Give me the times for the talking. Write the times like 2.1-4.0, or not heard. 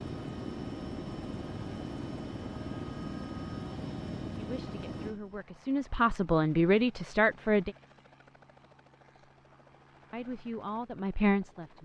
4.3-7.8, 10.1-11.8.